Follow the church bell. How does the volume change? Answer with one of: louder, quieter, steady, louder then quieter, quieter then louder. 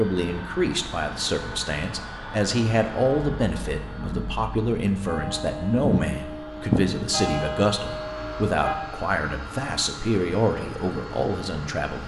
louder then quieter.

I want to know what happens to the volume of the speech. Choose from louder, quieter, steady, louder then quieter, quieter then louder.
steady.